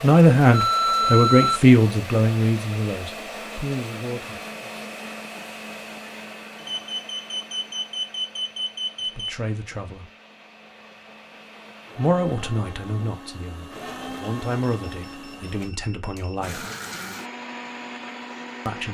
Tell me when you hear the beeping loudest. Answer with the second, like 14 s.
1 s.